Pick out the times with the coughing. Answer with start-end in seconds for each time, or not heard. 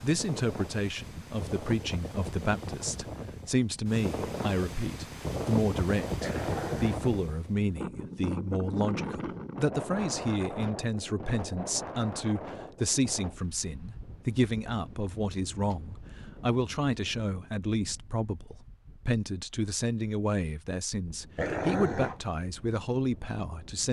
not heard.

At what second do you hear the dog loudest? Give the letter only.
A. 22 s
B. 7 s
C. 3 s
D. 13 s
A.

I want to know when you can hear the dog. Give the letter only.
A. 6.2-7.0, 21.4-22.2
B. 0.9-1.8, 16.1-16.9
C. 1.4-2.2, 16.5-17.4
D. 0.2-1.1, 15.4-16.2
A.